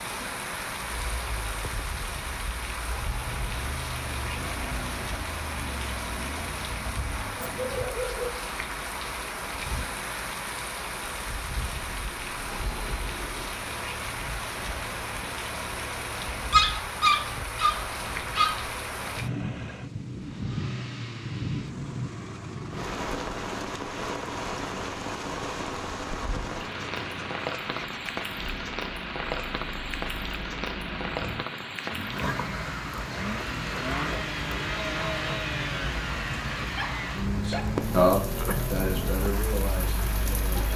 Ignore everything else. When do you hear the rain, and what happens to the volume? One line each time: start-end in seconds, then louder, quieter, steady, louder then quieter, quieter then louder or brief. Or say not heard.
0.0-40.7 steady.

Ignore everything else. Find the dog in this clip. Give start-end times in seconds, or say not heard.
7.3-8.4, 16.5-18.7, 36.6-37.8.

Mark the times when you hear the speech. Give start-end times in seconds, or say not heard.
37.5-40.7.